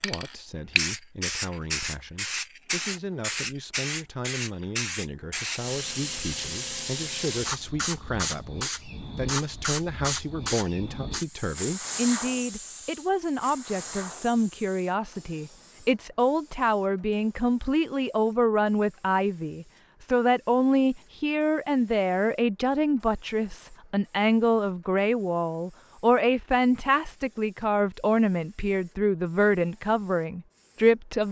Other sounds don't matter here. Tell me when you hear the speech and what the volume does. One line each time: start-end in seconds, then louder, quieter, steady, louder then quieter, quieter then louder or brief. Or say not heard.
0.0-31.2 louder.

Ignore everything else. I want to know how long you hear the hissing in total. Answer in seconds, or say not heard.
31 s.